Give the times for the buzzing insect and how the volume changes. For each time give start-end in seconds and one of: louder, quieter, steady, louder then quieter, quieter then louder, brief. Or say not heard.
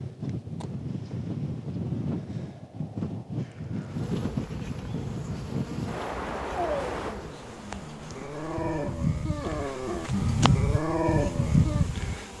3.9-12.3 louder.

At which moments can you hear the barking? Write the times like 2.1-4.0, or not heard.
6.5-11.9.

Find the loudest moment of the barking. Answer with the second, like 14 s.
11 s.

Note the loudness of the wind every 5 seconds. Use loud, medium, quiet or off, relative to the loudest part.
loud, loud, off.